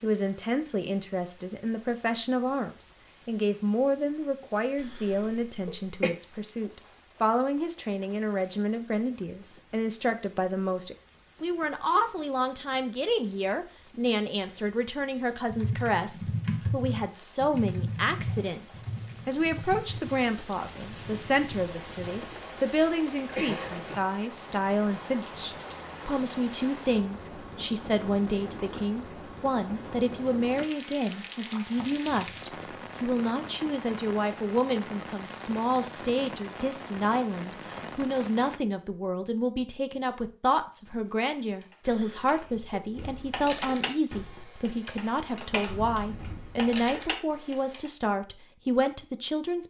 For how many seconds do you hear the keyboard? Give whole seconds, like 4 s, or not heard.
14 s.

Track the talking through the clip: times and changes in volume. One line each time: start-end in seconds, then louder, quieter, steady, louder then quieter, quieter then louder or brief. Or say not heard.
0.0-49.6 steady.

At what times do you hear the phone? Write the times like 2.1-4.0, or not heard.
not heard.